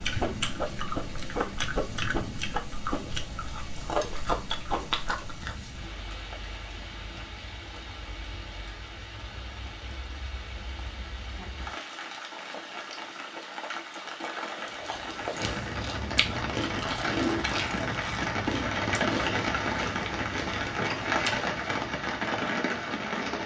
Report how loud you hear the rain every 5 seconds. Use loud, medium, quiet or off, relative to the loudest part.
medium, quiet, medium, loud, loud.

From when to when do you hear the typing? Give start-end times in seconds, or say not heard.
not heard.